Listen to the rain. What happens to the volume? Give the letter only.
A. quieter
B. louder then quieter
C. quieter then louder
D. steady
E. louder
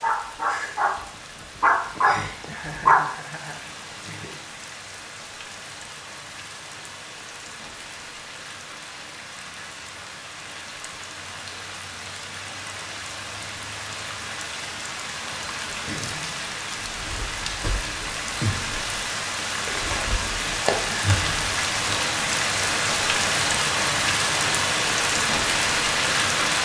E.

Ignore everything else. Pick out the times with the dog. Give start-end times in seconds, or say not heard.
0.0-3.0.